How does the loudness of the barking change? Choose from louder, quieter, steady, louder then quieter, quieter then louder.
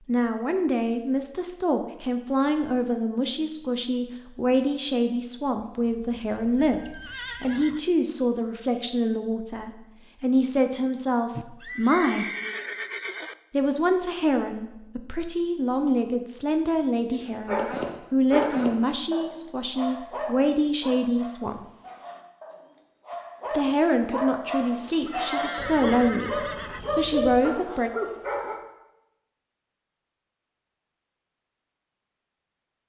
quieter then louder.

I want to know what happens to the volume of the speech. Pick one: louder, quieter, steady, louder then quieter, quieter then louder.
steady.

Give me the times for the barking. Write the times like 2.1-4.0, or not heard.
17.1-28.6.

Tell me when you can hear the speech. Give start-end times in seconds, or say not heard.
0.1-6.8, 7.4-12.2, 13.5-21.6, 23.5-27.9.